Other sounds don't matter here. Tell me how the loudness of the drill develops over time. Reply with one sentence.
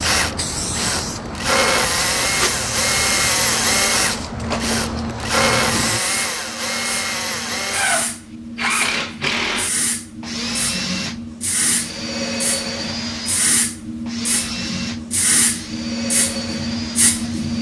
The volume of the drill goes down.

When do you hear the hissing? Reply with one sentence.
You can hear the hissing from 0.0 to 17.5 s.